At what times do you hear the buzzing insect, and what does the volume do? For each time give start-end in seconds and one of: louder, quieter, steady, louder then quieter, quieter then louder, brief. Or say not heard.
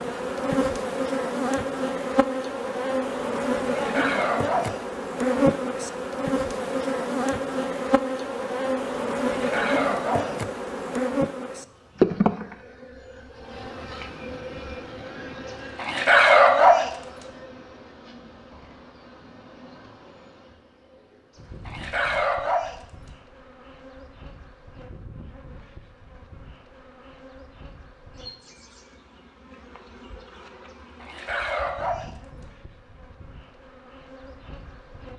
0.0-35.1 quieter.